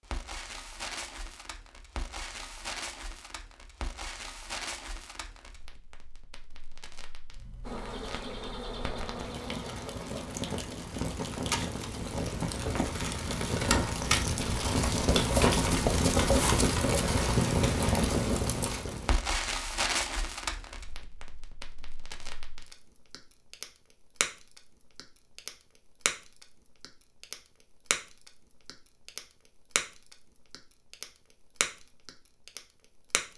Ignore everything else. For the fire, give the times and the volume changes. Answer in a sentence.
The fire can be heard from 0.0 to 33.3 s, getting louder then quieter.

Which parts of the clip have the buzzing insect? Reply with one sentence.
The buzzing insect can be heard from 7.7 to 10.6 s.